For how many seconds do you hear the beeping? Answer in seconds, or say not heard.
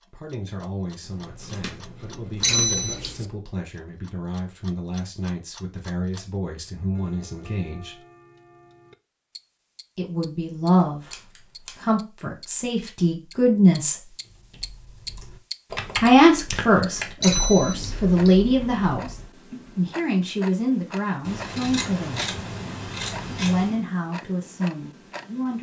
2 s.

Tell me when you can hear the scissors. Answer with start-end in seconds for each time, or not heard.
1.0-3.0, 10.8-11.8, 21.2-23.8.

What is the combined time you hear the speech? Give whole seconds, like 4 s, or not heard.
20 s.